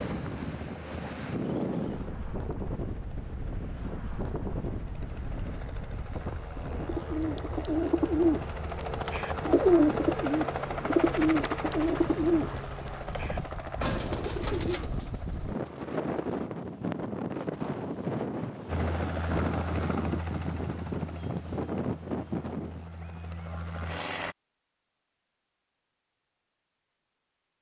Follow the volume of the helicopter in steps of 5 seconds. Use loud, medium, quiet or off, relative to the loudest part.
quiet, loud, loud, loud, medium, off.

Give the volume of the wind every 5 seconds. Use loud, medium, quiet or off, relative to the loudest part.
loud, medium, medium, loud, loud, off.